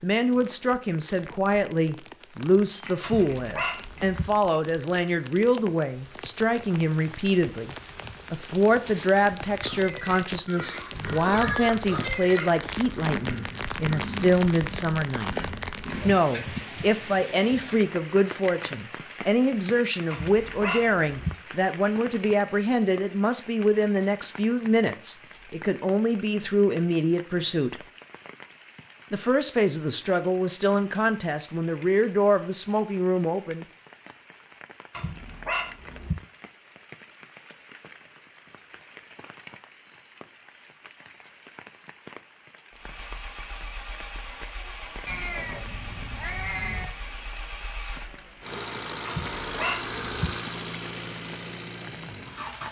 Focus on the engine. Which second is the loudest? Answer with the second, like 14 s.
50 s.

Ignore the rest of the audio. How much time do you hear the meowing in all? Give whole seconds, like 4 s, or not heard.
3 s.